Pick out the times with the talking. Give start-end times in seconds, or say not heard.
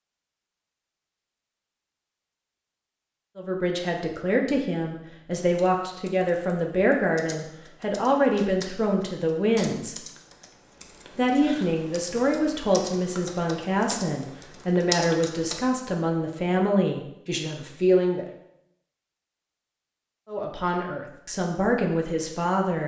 3.4-9.9, 11.2-18.2, 20.2-22.8.